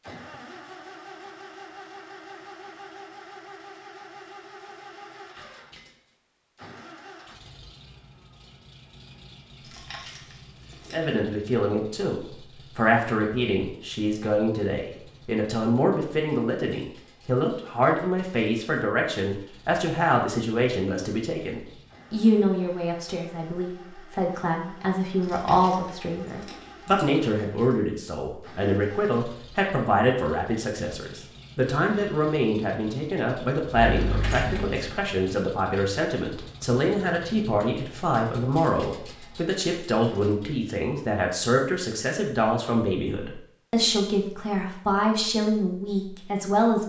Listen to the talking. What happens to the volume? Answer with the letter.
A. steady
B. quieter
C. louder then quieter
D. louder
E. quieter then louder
A.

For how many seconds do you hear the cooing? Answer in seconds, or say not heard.
not heard.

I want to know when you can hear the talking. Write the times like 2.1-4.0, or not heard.
10.9-46.8.